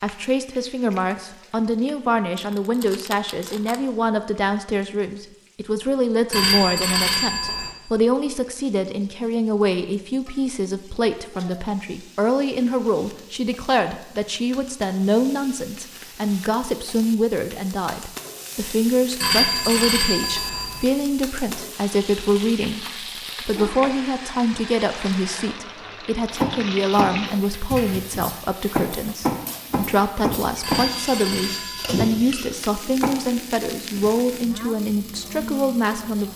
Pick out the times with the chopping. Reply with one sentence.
You can hear the chopping from 26.4 to 33.1 s.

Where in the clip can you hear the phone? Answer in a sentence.
You can hear the phone from 6.3 to 7.7 s, from 19.2 to 20.9 s and from 30.6 to 32.1 s.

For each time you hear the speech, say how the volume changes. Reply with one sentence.
The speech can be heard from 0.0 to 36.3 s, at a steady volume.